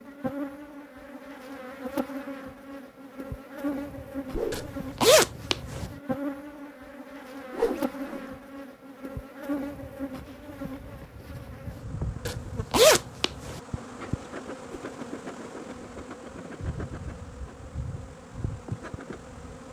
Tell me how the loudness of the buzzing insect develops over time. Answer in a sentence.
The volume of the buzzing insect stays about the same.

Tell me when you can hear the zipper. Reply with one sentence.
The zipper can be heard from 4.5 to 5.8 s and from 12.2 to 13.6 s.